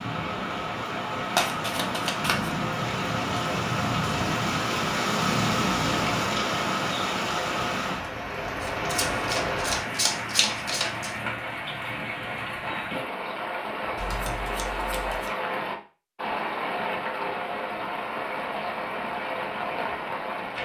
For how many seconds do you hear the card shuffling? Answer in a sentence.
You can hear the card shuffling for 5 seconds altogether.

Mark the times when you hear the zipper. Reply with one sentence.
You can't hear the zipper here.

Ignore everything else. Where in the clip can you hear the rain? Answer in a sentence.
The rain can be heard from 0.0 to 20.6 s.